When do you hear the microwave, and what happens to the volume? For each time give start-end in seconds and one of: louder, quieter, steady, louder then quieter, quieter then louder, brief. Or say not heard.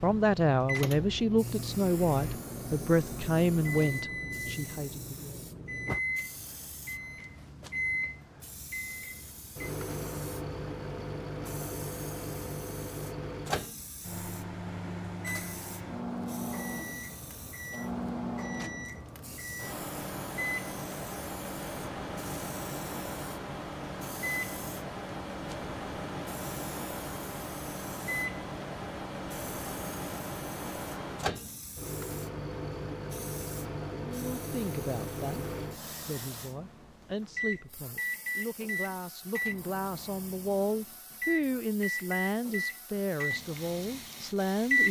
0.0-44.8 steady.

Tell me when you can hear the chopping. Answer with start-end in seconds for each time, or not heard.
not heard.